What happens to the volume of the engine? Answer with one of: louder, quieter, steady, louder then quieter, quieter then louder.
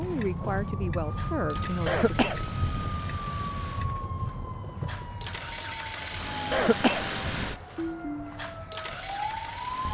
louder then quieter.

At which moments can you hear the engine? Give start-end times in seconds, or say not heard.
0.0-9.9.